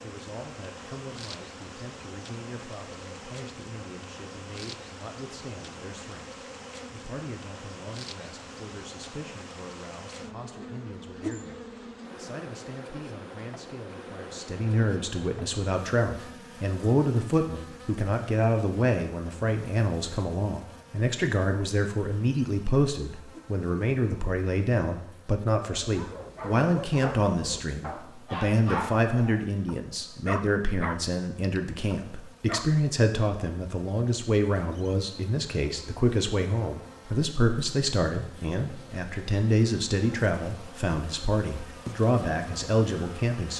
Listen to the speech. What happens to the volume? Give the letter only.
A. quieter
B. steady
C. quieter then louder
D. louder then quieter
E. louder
E.